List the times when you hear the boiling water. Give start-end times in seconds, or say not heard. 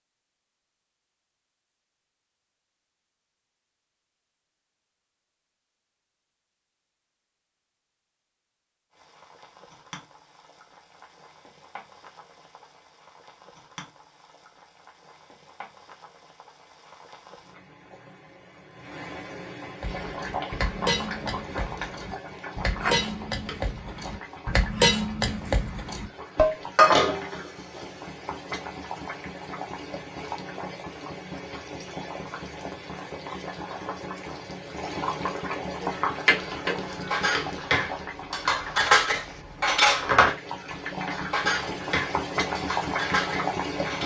8.9-44.0.